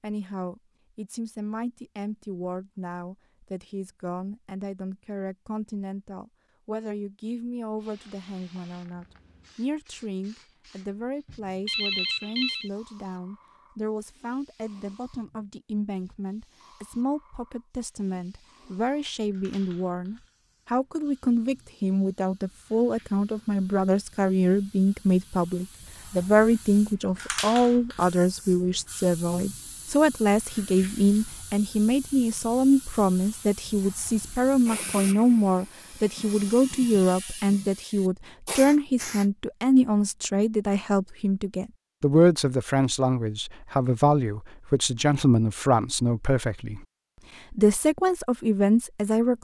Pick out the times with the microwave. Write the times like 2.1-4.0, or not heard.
not heard.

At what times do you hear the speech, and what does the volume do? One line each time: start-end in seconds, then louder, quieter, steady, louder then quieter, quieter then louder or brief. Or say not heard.
0.0-46.9 louder
47.5-49.3 brief.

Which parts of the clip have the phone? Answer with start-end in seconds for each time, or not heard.
11.7-12.7.